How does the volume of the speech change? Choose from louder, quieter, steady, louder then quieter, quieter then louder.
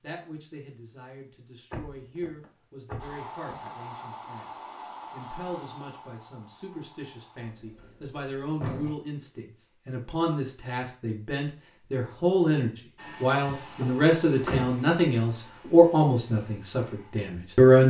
louder.